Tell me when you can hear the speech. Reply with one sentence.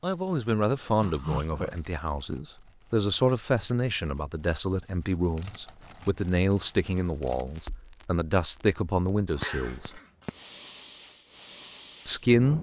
The speech can be heard from 0.0 to 10.0 s and from 12.1 to 12.5 s.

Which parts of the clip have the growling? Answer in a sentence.
The growling can be heard from 1.0 to 1.8 s and from 9.3 to 10.4 s.